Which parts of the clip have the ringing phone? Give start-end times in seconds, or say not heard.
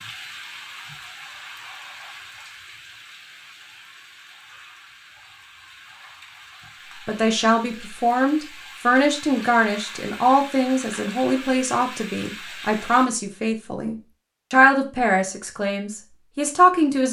not heard.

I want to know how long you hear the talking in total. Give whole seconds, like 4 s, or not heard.
10 s.